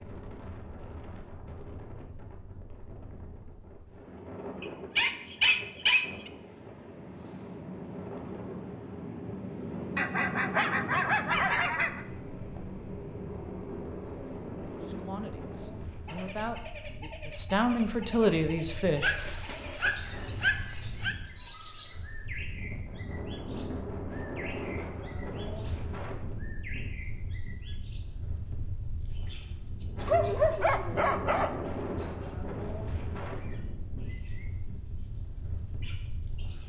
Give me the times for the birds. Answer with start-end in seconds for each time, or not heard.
6.7-28.4, 29.1-36.6.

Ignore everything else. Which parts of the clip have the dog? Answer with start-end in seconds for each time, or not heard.
4.6-6.3, 9.9-12.0, 19.0-21.1, 30.1-31.7.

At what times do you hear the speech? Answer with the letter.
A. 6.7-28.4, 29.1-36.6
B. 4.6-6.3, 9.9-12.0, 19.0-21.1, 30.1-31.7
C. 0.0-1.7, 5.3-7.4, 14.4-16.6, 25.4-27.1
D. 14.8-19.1
D.